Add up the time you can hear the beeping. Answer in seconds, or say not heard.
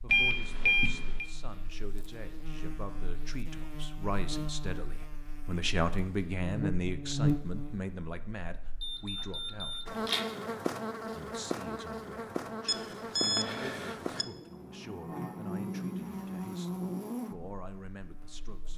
4 s.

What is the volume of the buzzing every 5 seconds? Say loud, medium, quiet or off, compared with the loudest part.
medium, loud, loud, loud.